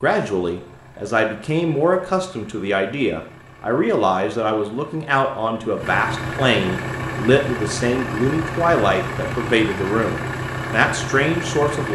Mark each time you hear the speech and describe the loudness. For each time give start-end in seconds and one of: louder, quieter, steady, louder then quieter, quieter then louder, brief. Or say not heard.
0.0-11.9 steady.